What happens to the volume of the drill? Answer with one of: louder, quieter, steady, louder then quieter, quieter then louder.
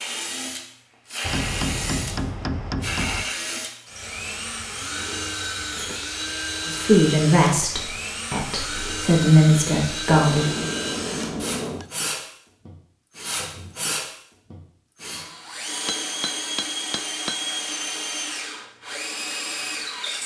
steady.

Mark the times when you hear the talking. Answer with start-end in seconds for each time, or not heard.
6.7-10.7.